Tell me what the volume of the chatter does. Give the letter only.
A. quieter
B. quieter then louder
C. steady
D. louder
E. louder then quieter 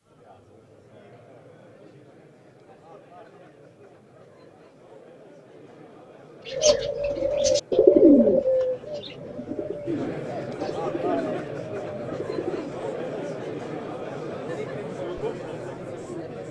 D.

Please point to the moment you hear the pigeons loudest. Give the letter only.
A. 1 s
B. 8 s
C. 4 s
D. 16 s
B.